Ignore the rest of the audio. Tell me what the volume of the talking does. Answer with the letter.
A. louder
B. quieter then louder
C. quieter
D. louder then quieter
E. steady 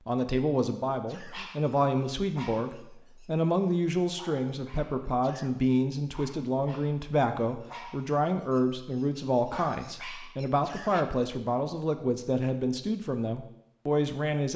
E.